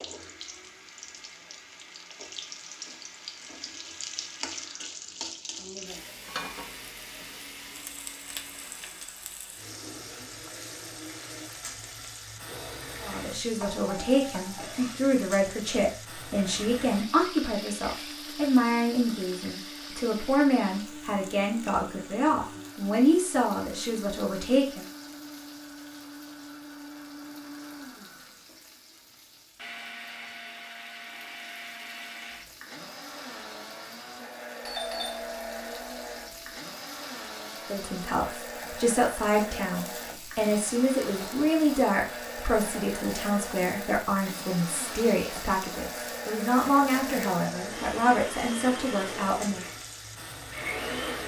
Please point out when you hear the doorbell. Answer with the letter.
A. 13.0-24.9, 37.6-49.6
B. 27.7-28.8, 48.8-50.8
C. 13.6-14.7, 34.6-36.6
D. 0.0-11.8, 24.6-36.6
C.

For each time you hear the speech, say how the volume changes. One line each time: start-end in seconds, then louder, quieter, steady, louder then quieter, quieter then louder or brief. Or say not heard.
13.0-24.9 steady
37.6-49.6 steady.